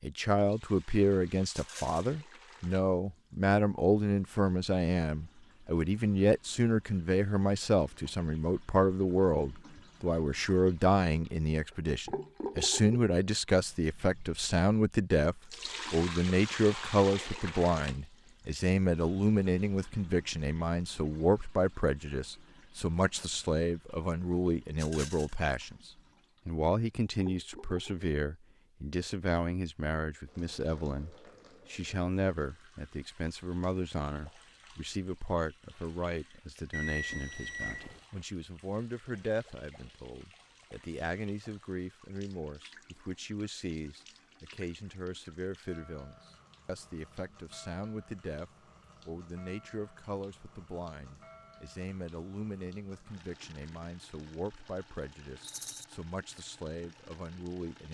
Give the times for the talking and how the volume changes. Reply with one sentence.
You can hear the talking from 0.0 to 57.8 s, getting quieter.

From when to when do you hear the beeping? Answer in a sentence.
You can hear the beeping from 36.7 to 38.0 s.